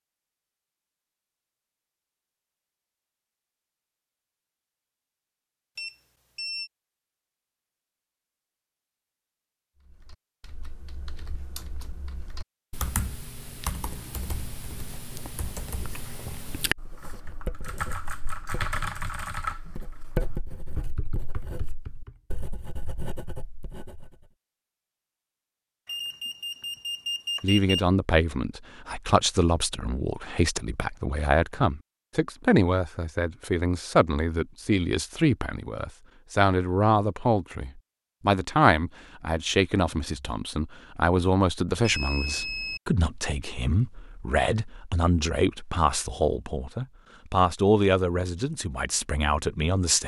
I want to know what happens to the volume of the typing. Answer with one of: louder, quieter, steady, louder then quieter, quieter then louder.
louder then quieter.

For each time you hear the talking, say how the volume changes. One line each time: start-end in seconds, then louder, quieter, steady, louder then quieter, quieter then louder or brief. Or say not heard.
27.4-50.0 steady.